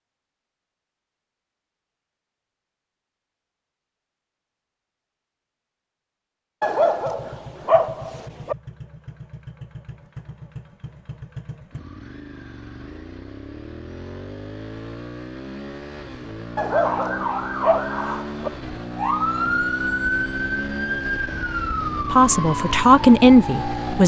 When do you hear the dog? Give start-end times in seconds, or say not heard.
6.6-8.6, 16.6-18.5.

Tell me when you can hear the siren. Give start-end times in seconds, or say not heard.
16.7-24.0.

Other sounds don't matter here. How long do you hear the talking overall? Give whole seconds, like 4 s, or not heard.
2 s.